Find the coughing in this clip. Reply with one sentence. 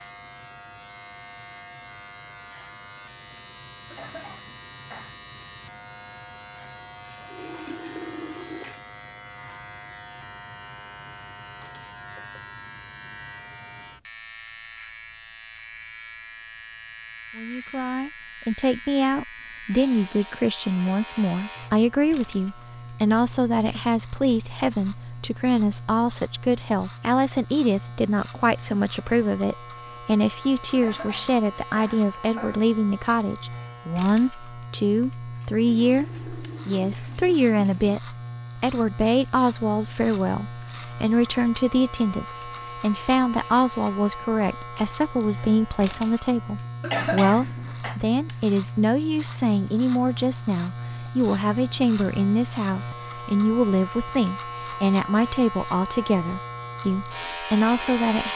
You can hear the coughing from 3.9 to 5.2 s, from 30.8 to 32.6 s and from 46.8 to 48.0 s.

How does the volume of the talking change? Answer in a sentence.
The loudness of the talking stays about the same.